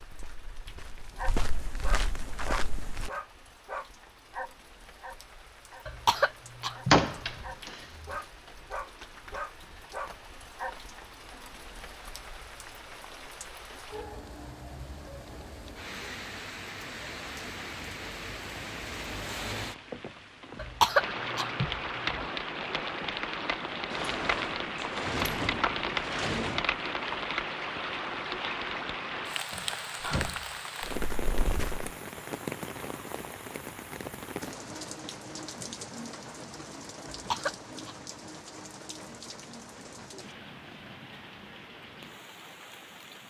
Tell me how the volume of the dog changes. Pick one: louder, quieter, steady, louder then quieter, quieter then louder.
quieter then louder.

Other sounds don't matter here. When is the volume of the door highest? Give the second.
7 s.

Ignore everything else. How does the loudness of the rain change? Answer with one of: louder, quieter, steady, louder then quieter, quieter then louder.
louder then quieter.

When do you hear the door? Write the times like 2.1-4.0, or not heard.
6.9-8.2, 23.9-26.6, 29.5-30.6.